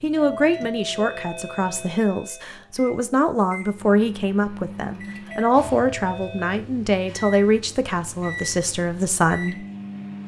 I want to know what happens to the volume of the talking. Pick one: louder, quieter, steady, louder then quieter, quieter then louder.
steady.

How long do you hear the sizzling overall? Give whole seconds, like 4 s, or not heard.
not heard.